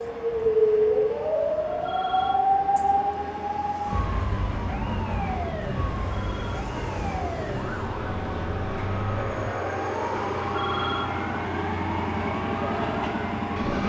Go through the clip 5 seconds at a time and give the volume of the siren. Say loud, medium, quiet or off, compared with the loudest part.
loud, medium, medium.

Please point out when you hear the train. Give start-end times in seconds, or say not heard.
0.0-13.8.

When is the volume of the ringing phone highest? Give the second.
11 s.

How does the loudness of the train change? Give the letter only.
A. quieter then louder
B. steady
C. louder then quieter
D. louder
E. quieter
D.